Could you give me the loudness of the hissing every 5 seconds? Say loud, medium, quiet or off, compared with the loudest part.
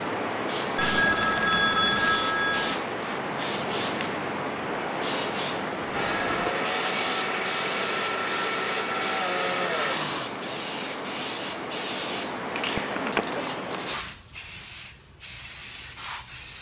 loud, loud, loud, medium.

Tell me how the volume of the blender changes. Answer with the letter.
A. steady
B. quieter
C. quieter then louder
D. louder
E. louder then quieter
A.